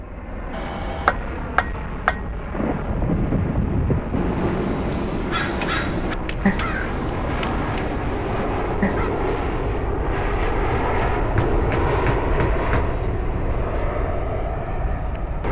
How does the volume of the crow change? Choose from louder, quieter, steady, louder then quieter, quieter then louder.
quieter.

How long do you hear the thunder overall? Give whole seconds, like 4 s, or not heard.
2 s.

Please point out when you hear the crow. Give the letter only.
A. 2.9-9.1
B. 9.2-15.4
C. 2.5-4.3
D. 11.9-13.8
A.